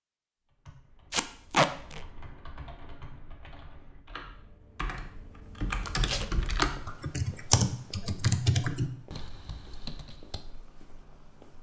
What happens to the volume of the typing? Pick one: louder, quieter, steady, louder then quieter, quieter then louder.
louder.